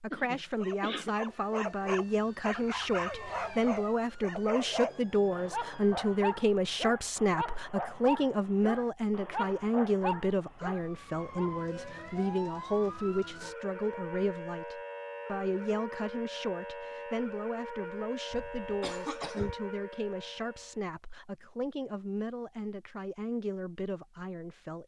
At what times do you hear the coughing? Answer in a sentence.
The coughing can be heard from 0.1 to 1.1 s and from 18.3 to 19.6 s.